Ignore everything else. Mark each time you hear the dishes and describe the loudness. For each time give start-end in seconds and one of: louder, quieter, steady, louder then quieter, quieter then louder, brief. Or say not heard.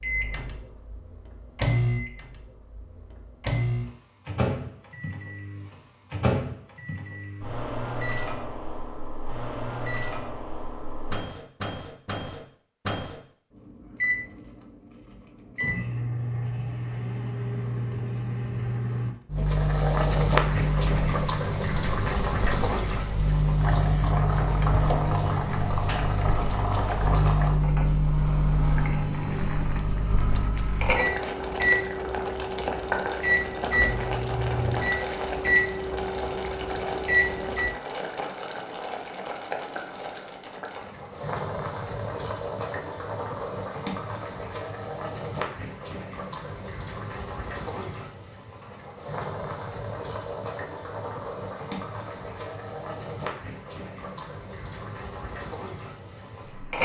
not heard.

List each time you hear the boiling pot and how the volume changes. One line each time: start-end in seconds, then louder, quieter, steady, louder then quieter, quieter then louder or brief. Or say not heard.
19.4-56.8 quieter.